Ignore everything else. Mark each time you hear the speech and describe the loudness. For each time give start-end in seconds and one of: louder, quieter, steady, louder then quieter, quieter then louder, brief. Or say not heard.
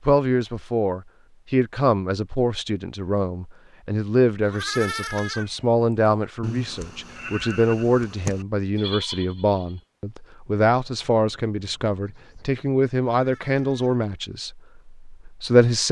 0.1-15.8 steady.